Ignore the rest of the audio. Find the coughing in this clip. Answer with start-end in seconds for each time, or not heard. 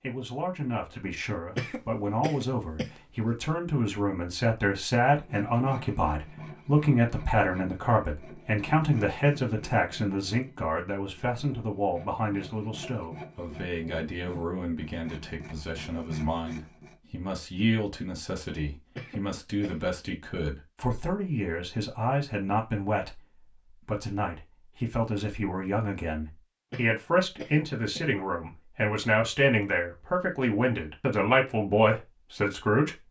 1.6-3.3, 18.9-19.9, 26.7-28.1.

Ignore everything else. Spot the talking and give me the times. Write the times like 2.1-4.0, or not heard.
0.0-33.0.